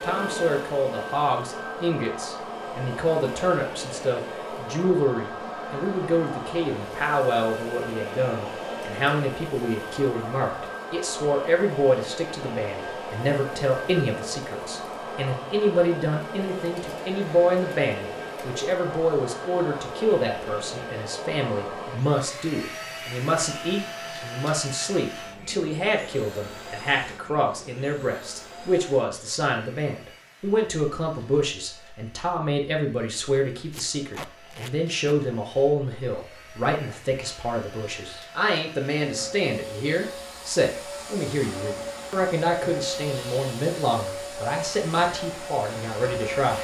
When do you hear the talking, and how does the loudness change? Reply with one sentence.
You can hear the talking from 0.0 to 46.6 s, at a steady volume.